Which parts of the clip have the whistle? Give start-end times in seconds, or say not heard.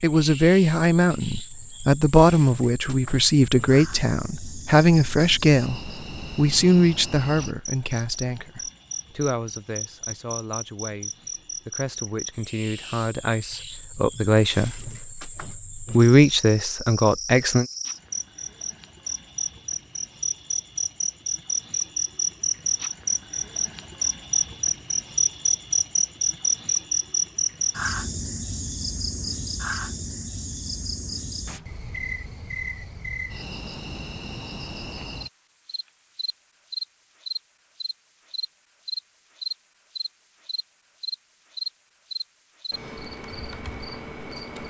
not heard.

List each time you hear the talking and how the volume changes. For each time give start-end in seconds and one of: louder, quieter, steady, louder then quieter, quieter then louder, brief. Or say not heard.
0.0-17.6 quieter then louder.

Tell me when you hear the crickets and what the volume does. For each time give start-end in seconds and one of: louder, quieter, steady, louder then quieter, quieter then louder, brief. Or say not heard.
0.0-44.6 louder then quieter.